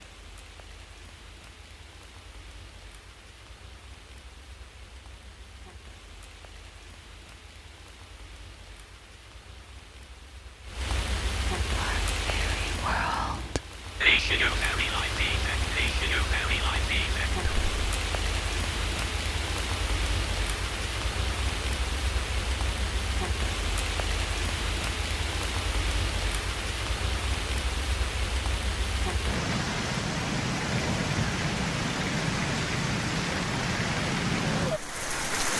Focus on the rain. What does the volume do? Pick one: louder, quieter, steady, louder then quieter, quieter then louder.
louder.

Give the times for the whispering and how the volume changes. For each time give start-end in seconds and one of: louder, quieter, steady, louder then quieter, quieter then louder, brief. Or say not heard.
11.7-17.6 louder then quieter.